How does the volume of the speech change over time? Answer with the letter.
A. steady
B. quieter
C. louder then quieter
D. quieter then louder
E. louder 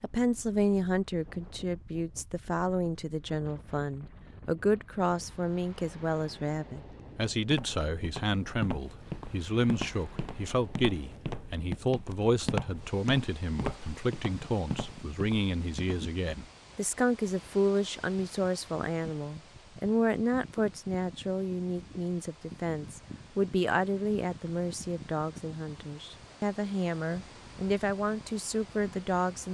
A.